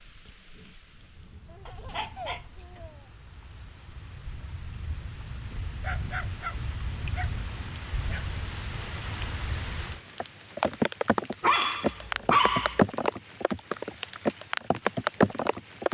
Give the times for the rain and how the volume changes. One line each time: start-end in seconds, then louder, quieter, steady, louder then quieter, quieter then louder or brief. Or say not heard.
0.0-15.8 louder.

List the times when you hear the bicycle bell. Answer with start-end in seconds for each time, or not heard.
not heard.